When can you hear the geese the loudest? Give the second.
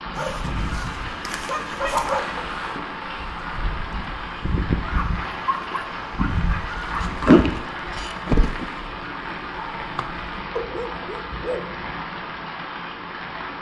7 s.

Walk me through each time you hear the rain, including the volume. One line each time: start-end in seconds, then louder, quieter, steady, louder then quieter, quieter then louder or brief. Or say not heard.
0.0-13.5 steady.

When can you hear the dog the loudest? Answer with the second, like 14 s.
2 s.